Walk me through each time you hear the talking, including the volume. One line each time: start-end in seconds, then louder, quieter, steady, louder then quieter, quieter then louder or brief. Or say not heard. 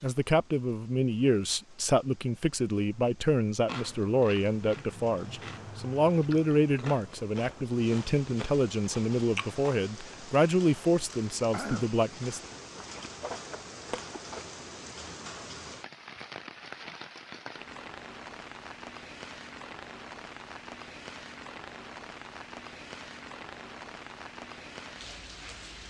0.0-12.4 steady.